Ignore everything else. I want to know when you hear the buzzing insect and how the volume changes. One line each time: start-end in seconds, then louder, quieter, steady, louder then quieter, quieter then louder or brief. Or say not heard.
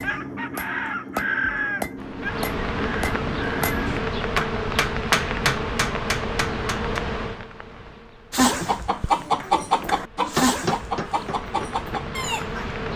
1.9-12.9 quieter then louder.